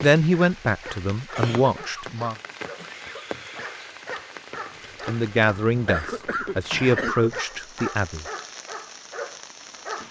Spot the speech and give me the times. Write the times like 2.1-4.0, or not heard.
0.0-2.4, 5.0-8.2.